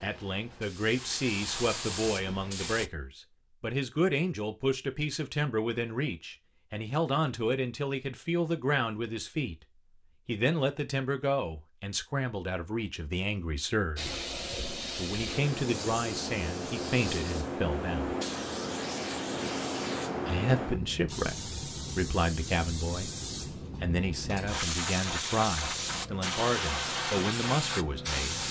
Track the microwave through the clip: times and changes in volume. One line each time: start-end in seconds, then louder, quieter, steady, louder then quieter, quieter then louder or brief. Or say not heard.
not heard.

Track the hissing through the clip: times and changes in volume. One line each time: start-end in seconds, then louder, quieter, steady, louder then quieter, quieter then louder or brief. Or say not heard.
0.0-2.9 brief
13.9-28.4 steady.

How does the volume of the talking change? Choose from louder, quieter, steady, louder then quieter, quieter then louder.
steady.